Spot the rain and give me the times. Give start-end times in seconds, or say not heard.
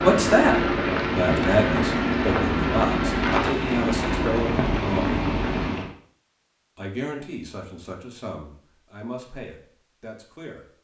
0.0-5.9.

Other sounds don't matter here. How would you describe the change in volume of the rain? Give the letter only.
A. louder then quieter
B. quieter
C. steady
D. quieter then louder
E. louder
C.